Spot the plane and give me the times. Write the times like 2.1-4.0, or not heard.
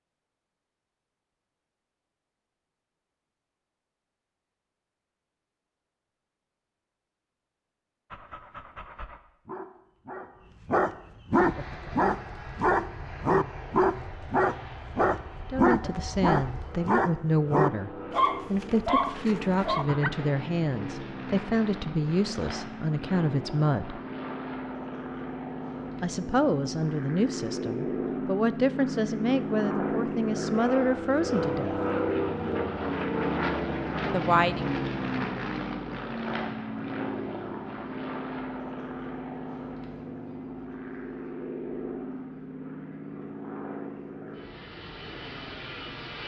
11.3-46.2.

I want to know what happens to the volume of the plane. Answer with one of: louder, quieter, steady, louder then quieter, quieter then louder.
louder then quieter.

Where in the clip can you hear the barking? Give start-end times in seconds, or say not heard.
8.1-20.1.